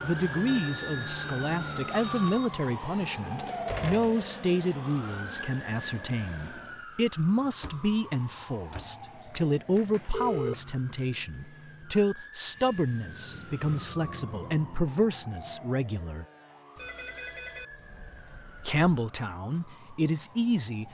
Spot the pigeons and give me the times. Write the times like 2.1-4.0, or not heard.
not heard.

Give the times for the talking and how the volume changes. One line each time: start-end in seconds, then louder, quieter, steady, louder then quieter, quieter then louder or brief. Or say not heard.
0.0-16.2 steady
18.6-20.8 brief.